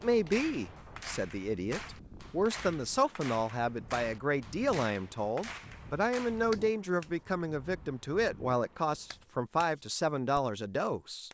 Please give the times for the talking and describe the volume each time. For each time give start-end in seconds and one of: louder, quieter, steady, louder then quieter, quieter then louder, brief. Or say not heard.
0.0-11.2 steady.